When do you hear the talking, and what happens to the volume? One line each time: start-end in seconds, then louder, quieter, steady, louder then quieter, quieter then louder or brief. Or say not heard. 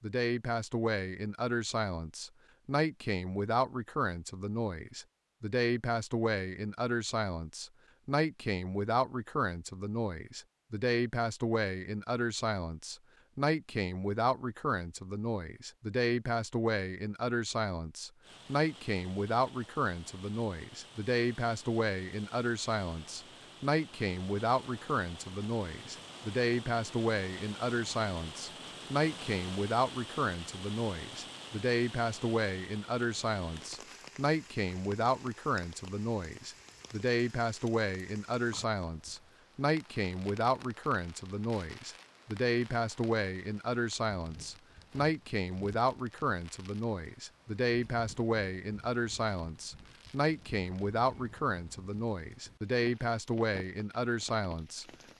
0.0-54.9 steady.